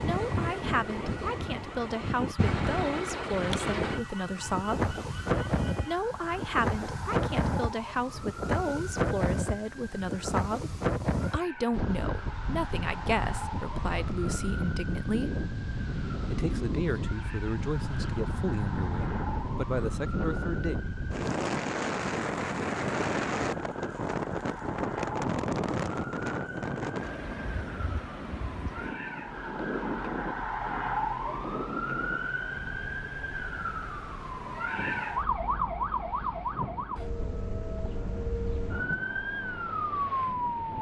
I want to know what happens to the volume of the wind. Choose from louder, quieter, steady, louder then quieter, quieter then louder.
quieter.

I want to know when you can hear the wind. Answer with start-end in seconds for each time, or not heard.
0.0-40.7.